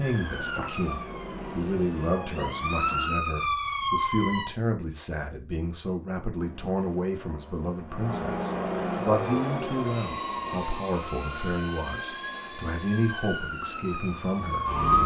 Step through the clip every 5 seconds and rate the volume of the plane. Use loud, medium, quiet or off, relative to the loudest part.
medium, loud, medium.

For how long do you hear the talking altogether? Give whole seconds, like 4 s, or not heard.
15 s.